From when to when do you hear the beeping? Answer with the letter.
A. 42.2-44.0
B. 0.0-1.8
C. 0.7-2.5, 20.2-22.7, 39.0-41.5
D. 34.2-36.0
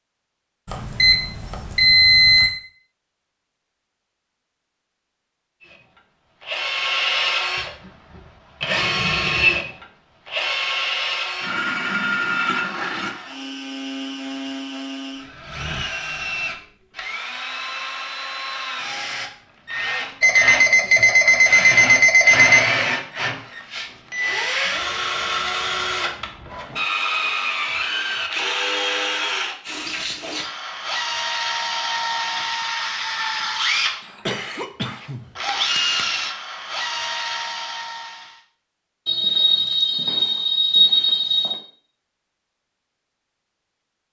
C.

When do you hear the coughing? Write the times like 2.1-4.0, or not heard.
34.2-36.0.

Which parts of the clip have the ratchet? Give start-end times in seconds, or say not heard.
not heard.